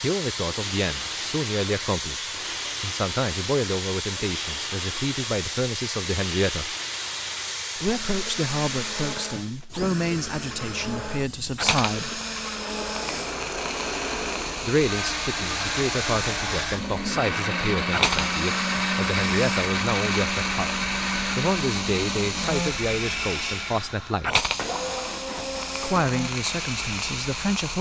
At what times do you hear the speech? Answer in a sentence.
You can hear the speech from 0.0 to 6.8 s, from 7.8 to 12.2 s, from 14.6 to 20.7 s, from 21.4 to 24.4 s and from 25.8 to 27.7 s.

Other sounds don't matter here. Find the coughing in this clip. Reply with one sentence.
You can't hear the coughing here.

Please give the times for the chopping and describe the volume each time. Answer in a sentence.
You can't hear the chopping here.